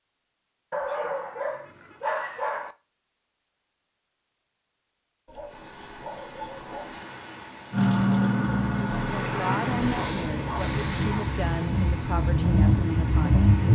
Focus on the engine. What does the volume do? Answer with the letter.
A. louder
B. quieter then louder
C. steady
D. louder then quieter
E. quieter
B.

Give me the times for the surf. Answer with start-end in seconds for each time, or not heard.
5.5-13.6.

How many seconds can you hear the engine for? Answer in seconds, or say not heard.
6 s.